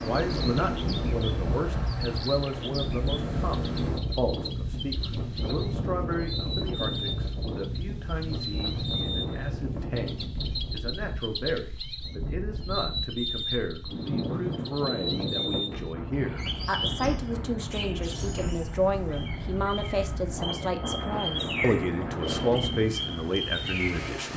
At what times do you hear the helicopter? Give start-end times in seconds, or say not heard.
not heard.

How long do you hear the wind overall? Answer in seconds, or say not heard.
24 s.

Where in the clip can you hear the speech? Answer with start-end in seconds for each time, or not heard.
0.0-24.3.